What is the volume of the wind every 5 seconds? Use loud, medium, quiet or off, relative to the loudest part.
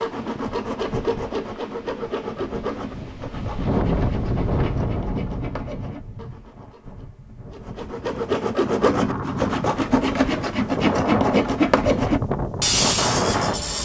loud, medium, loud.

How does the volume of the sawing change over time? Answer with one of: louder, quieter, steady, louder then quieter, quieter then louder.
quieter then louder.